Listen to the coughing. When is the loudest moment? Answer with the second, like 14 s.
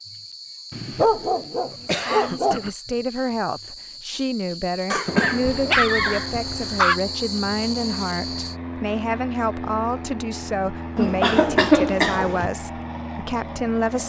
12 s.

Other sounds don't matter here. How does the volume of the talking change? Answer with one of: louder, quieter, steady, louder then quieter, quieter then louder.
steady.